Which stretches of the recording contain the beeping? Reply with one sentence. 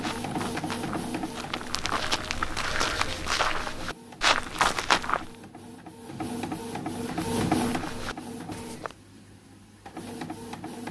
You can't hear the beeping here.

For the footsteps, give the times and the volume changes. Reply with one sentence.
You can hear the footsteps from 0.0 to 5.3 s, getting louder; and briefly from 7.0 to 8.9 s.